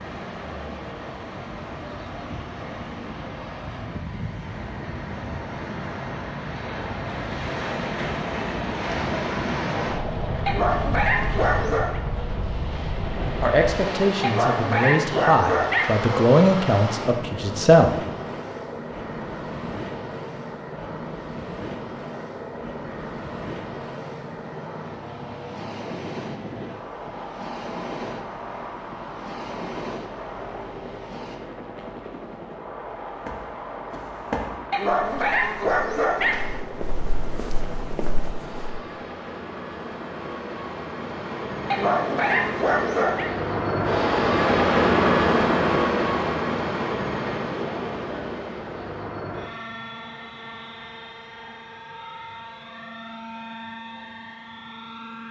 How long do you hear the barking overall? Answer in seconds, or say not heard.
7 s.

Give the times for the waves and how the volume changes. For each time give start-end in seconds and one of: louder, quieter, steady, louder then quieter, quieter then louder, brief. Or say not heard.
0.0-31.4 louder then quieter.